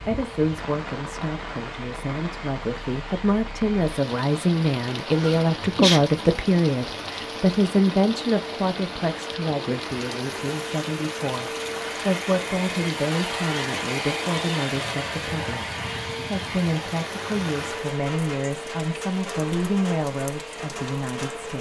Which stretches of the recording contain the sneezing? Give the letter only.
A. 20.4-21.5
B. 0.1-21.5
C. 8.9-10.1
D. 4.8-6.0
D.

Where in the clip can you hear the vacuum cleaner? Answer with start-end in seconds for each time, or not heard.
0.0-21.5.